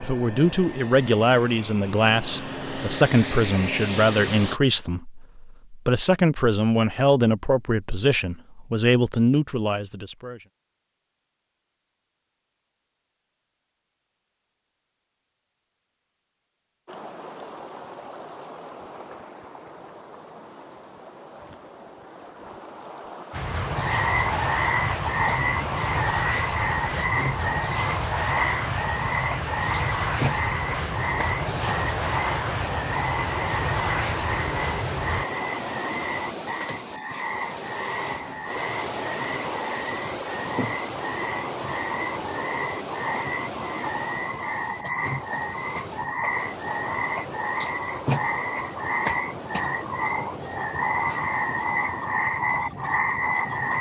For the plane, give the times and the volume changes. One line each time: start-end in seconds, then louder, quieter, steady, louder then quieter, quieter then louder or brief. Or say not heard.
0.0-4.6 louder
23.3-35.2 steady.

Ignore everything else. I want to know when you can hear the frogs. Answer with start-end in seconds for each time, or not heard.
23.6-53.7.